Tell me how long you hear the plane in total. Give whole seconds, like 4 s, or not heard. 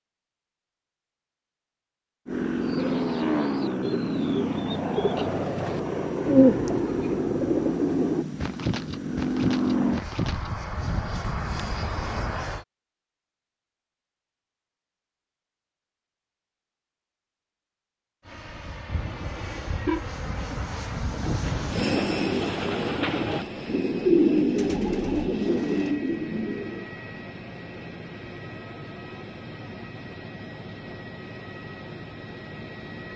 25 s.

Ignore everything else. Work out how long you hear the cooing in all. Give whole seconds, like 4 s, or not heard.
14 s.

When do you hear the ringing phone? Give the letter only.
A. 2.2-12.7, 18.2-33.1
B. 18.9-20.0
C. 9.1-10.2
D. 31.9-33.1
B.